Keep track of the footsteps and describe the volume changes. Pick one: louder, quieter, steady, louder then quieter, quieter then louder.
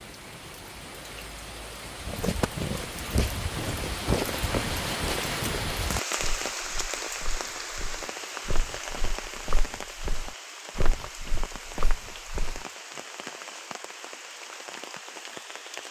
quieter then louder.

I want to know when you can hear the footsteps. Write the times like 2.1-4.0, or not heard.
2.0-12.6.